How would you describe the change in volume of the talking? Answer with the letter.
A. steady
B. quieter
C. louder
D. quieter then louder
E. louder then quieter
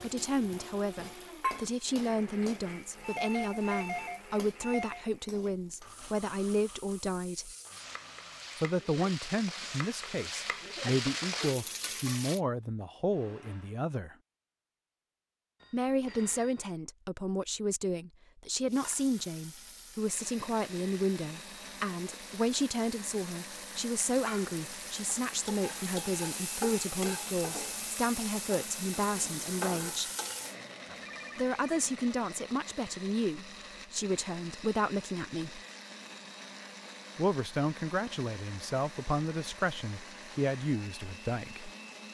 A.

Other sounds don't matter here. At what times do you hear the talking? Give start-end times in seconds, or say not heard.
0.0-7.5, 8.6-14.2, 15.7-30.1, 31.4-35.6, 37.1-41.7.